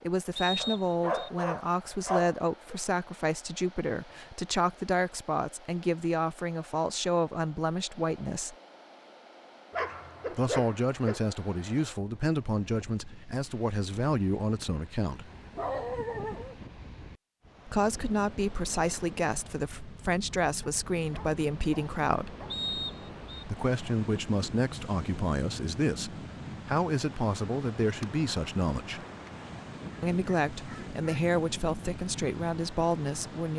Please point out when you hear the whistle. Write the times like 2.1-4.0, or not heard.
0.3-1.3, 22.5-23.4.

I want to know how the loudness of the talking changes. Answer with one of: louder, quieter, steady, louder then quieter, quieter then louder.
steady.